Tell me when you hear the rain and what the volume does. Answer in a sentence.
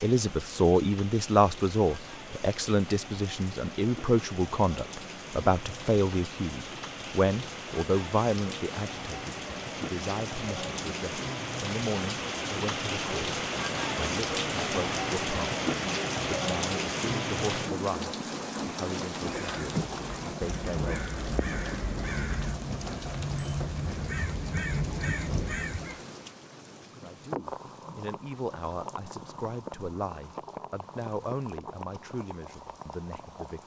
The rain can be heard from 0.0 to 33.6 s, getting louder then quieter.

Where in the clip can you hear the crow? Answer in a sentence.
You can hear the crow from 19.2 to 26.0 s.